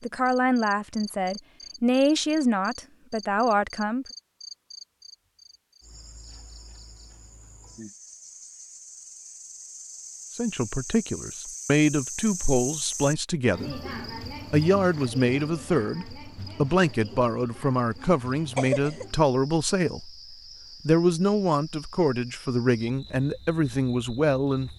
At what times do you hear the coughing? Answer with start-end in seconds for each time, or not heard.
18.0-19.1.